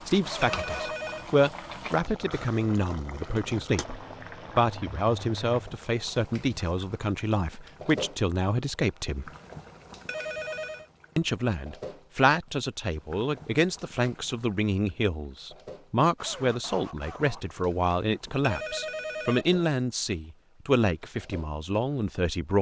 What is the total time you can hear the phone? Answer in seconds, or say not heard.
3 s.